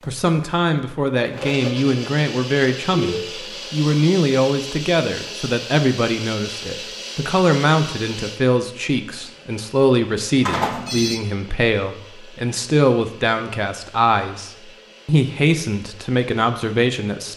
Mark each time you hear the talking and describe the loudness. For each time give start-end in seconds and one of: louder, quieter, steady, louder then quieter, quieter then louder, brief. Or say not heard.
0.1-17.3 steady.